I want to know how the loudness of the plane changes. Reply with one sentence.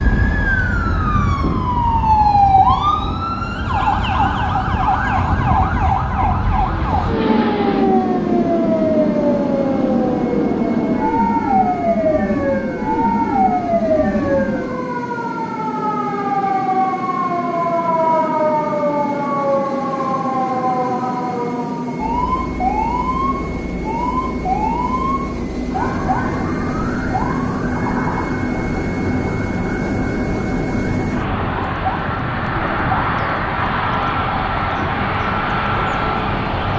The volume of the plane goes up.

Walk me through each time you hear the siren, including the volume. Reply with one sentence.
You can hear the siren from 0.0 to 36.7 s, getting quieter.